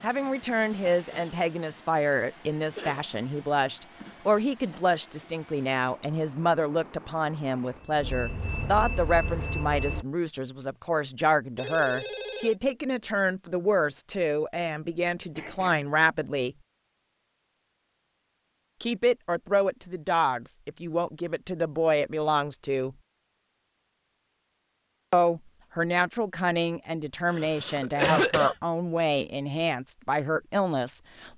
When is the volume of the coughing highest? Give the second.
28 s.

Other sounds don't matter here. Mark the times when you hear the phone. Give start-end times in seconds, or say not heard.
11.6-12.6.